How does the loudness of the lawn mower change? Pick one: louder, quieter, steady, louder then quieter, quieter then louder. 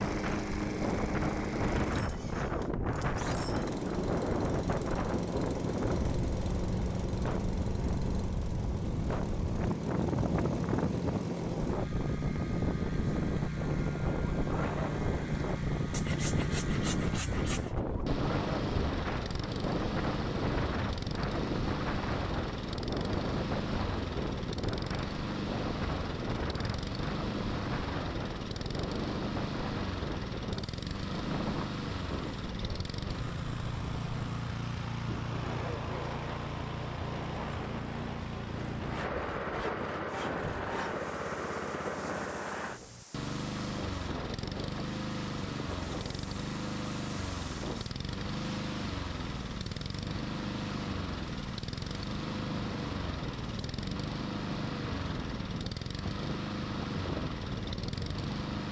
steady.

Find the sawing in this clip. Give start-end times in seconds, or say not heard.
15.9-17.8, 38.5-41.0.